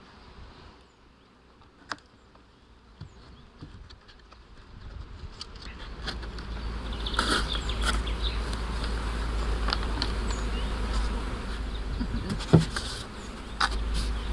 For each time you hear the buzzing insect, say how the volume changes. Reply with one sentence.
The buzzing insect can be heard from 0.0 to 14.2 s, getting louder.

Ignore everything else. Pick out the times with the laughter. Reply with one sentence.
The laughter can be heard from 11.8 to 12.5 s.